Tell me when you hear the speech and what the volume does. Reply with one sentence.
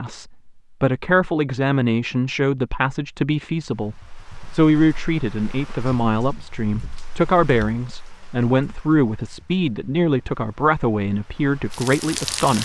You can hear the speech from 0.0 to 12.6 s, at a steady volume.